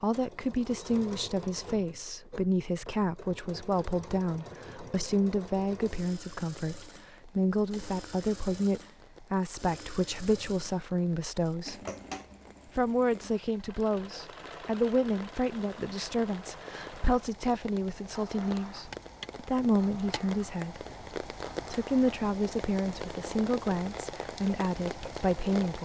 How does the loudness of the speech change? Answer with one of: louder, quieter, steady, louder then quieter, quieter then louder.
steady.